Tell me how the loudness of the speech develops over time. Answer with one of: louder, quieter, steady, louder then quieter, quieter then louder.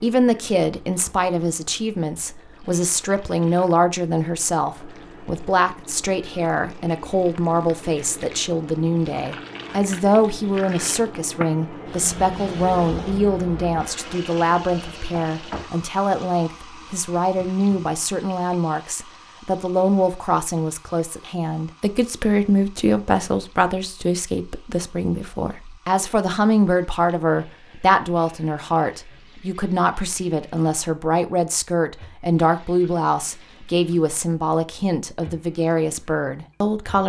steady.